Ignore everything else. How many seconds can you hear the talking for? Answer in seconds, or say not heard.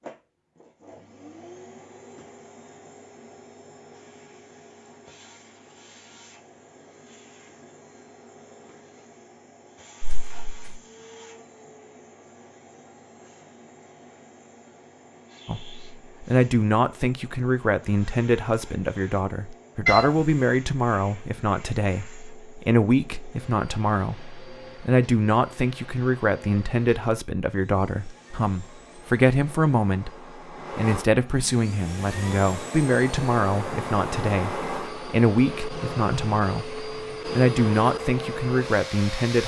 23 s.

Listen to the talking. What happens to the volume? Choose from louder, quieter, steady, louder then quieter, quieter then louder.
steady.